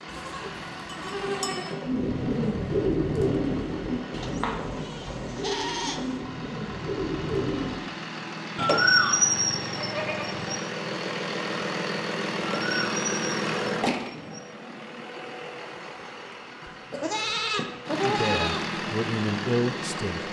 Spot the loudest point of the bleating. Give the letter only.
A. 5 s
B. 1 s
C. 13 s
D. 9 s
D.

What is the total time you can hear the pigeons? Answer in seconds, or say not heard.
6 s.